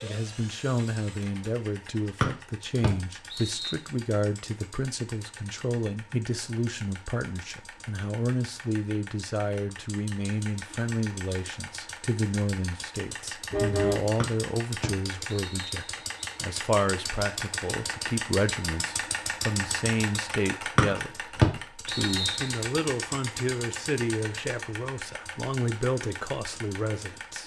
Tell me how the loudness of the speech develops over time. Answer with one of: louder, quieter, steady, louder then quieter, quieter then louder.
steady.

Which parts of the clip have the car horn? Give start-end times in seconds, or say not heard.
13.5-14.1.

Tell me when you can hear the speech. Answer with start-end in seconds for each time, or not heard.
0.0-27.4.